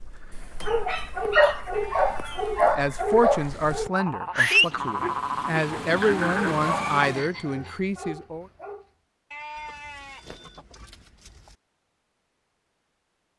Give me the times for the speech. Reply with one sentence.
You can hear the speech from 2.7 to 8.4 s.